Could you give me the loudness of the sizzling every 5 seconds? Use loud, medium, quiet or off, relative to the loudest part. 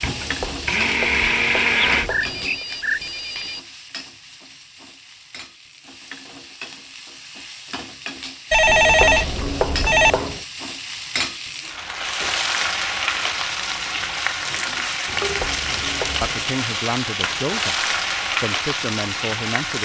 medium, medium, loud, loud.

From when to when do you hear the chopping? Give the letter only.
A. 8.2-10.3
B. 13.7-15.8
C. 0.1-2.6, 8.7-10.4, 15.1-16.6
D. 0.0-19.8
C.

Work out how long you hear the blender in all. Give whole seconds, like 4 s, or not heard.
2 s.